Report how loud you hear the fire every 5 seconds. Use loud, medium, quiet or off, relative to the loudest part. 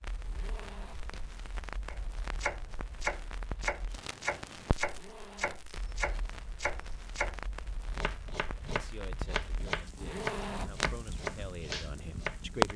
quiet, quiet, loud.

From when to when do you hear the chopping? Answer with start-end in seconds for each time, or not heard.
1.9-12.7.